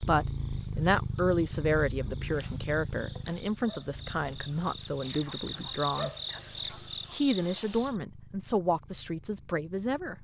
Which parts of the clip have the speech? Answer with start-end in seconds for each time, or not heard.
0.0-10.1.